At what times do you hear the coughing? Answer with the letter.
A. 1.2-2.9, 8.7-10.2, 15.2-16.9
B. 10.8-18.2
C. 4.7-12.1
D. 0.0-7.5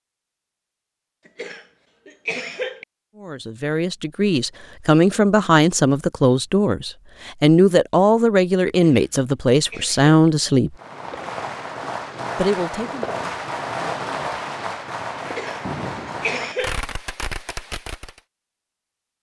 A.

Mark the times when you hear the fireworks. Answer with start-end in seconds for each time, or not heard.
10.8-18.2.